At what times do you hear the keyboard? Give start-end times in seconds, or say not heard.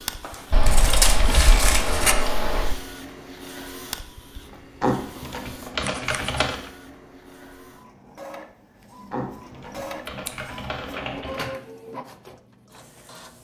0.5-2.8, 4.8-6.6, 9.1-11.6.